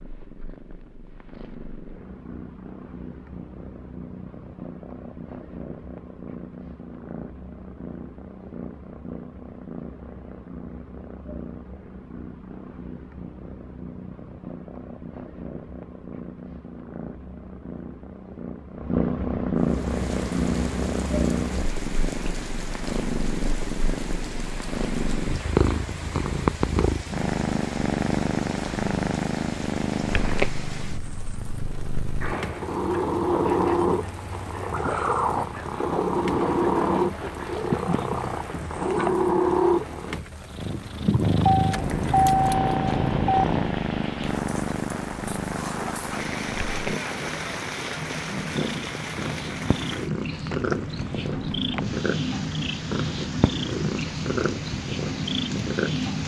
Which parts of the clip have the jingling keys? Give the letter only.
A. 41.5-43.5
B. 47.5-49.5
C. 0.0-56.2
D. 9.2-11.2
A.